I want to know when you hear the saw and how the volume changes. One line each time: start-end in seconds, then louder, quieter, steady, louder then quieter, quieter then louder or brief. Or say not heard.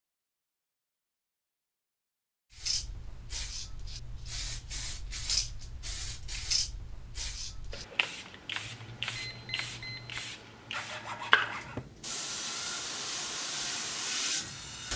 10.7-14.9 steady.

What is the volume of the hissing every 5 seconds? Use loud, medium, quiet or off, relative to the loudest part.
medium, loud, loud.